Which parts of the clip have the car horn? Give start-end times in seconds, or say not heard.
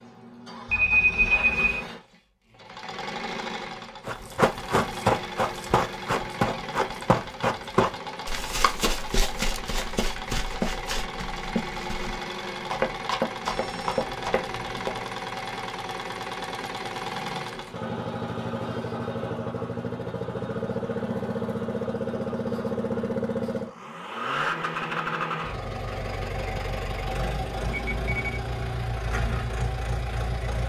not heard.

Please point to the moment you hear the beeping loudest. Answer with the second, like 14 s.
1 s.